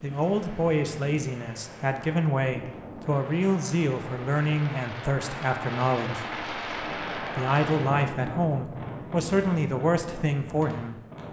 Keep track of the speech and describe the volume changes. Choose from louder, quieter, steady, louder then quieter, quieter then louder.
steady.